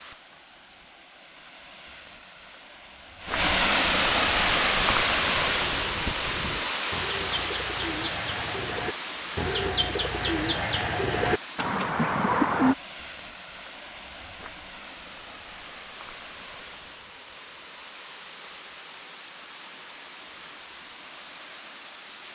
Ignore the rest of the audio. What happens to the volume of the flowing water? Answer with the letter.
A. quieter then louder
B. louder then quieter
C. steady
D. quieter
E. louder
D.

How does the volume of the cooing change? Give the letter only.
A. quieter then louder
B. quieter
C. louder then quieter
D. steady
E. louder
E.